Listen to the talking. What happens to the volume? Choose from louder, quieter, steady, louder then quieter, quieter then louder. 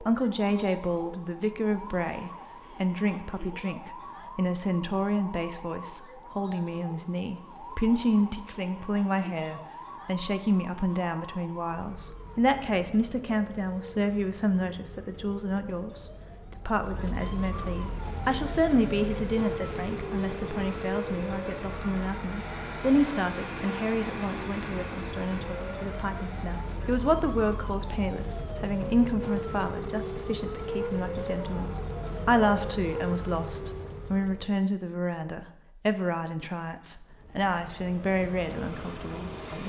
steady.